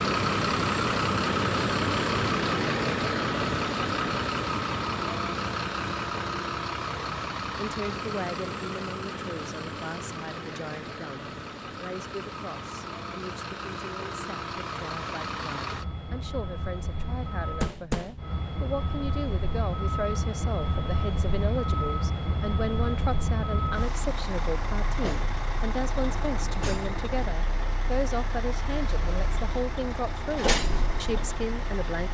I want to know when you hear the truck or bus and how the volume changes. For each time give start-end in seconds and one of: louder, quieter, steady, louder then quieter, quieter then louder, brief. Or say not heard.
0.0-32.0 quieter.